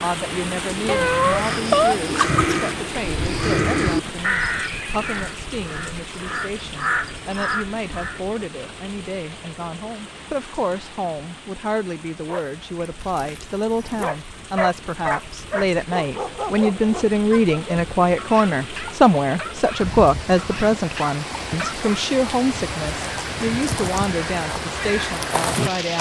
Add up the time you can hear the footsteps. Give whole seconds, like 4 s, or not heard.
not heard.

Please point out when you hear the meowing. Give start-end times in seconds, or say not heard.
0.8-2.6.